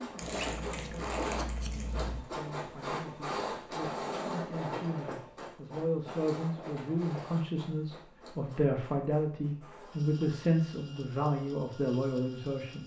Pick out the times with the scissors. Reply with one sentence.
You can hear the scissors from 0.2 to 2.2 s.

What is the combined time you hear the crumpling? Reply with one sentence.
You can hear the crumpling for 2 seconds altogether.